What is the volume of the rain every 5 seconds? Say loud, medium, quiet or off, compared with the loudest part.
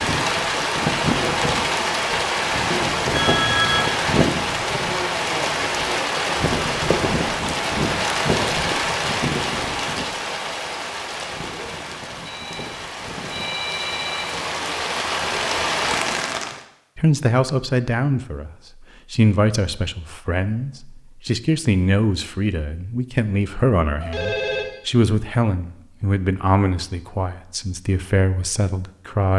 loud, loud, medium, loud, off, off.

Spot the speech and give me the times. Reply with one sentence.
The speech can be heard from 16.9 to 29.3 s.